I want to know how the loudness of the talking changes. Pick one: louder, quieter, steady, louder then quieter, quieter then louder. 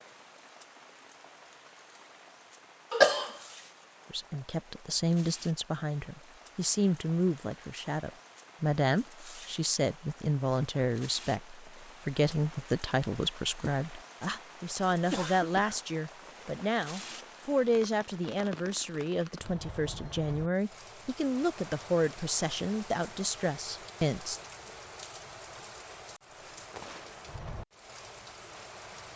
steady.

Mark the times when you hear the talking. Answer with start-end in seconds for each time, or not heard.
4.1-24.4.